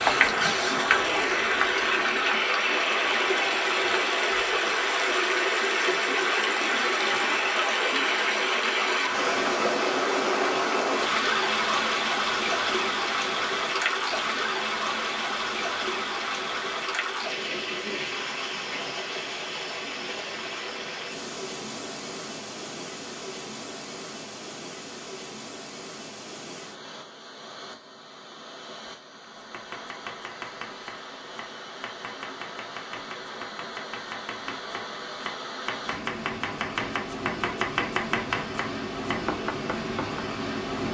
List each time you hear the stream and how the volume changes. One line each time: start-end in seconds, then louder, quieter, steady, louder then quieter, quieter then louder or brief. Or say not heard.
0.0-40.9 quieter then louder.